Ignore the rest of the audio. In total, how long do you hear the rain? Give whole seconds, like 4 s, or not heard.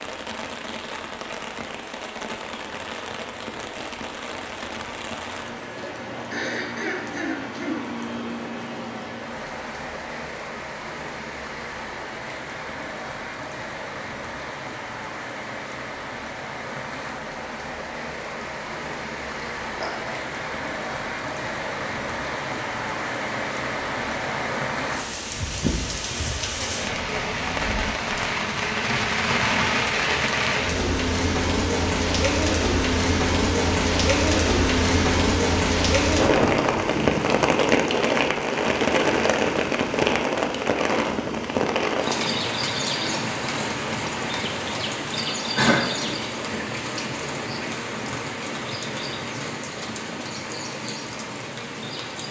52 s.